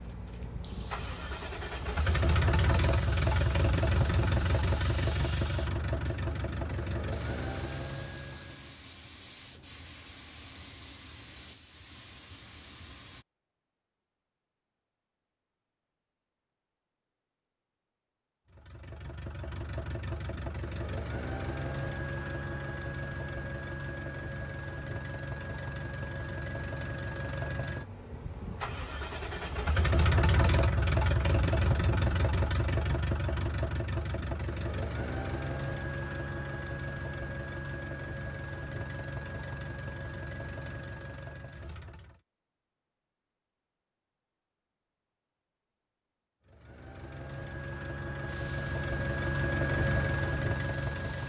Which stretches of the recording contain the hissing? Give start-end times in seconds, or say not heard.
0.0-13.2, 48.2-51.2.